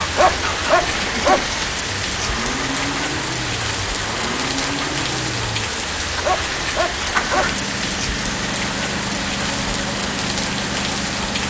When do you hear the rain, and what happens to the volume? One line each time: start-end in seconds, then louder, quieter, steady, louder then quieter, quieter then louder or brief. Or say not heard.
0.0-11.4 steady.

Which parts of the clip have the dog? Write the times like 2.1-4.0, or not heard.
0.1-1.5, 6.2-7.5.